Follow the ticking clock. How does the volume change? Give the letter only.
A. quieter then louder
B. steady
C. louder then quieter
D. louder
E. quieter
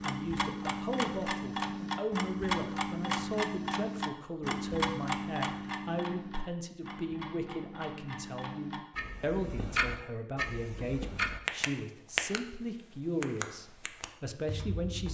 A.